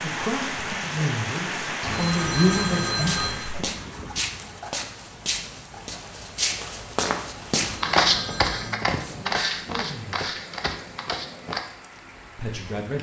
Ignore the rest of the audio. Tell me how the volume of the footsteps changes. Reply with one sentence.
The loudness of the footsteps goes up, then down.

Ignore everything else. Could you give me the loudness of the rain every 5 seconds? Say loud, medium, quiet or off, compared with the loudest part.
loud, quiet, quiet.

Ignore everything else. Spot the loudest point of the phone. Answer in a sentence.
The volume of the phone peaks at 3 seconds.